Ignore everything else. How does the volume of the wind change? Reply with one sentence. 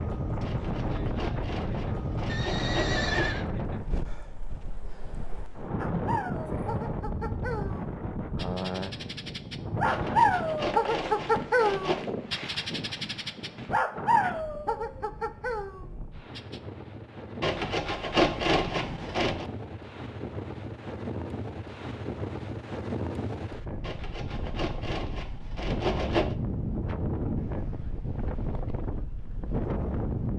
The loudness of the wind goes down, then up.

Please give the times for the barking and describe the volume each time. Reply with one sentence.
You can hear the barking from 5.8 to 16.6 s, getting louder then quieter.